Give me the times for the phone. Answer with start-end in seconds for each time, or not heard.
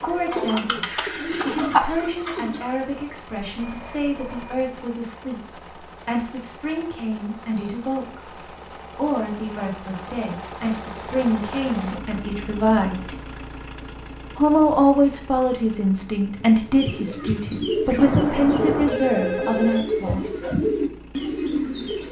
3.4-4.7, 17.9-19.9.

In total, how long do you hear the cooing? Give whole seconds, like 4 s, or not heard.
8 s.